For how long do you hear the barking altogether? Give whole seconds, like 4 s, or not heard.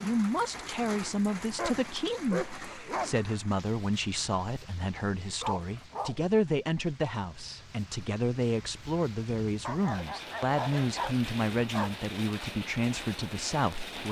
5 s.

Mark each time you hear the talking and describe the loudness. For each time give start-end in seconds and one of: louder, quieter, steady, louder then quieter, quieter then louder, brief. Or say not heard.
0.0-14.0 steady.